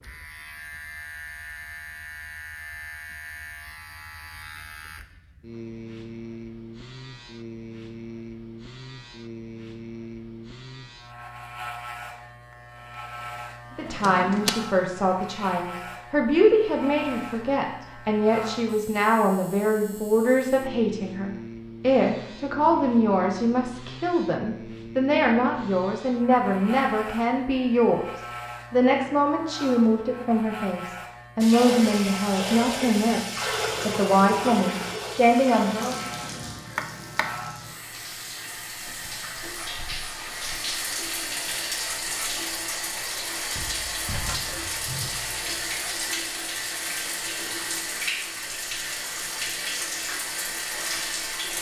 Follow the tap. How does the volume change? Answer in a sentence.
The loudness of the tap goes down, then up.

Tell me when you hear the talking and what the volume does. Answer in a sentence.
You can hear the talking from 13.8 to 36.0 s, at a steady volume.